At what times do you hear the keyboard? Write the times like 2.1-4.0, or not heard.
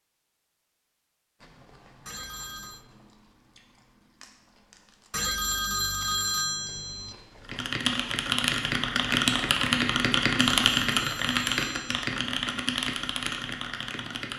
7.4-14.3.